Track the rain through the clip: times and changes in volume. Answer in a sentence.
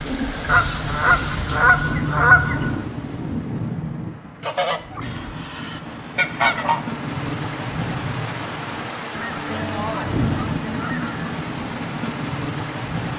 You can hear the rain from 0.0 to 13.1 s, at a steady volume.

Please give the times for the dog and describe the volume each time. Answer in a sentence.
You can't hear the dog here.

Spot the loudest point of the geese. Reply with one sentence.
The volume of the geese peaks at 2 seconds.